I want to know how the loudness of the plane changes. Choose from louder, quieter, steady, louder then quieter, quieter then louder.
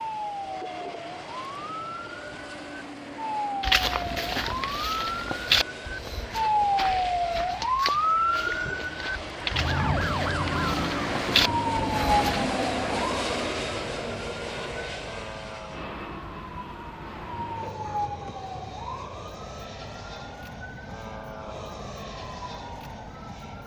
louder then quieter.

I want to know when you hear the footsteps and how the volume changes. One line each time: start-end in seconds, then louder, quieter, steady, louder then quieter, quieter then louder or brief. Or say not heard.
3.6-12.5 quieter then louder.